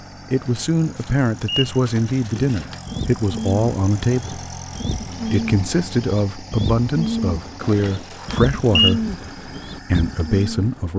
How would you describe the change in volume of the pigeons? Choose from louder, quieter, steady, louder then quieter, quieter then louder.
louder.